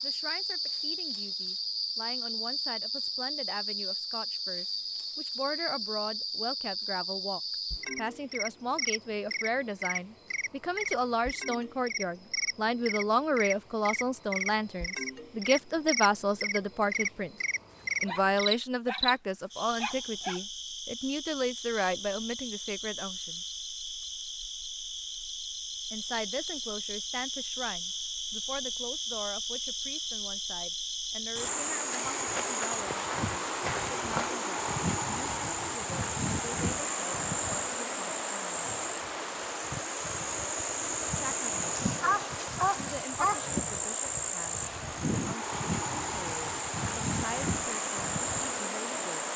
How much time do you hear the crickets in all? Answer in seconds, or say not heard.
49 s.